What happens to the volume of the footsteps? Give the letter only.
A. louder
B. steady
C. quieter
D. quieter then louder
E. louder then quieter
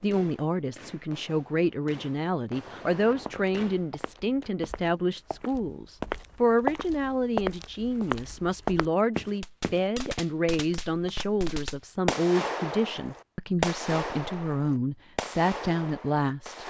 A.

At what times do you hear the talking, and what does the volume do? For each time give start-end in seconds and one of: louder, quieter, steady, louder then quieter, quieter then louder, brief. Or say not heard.
0.0-16.6 steady.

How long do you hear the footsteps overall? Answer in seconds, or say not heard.
7 s.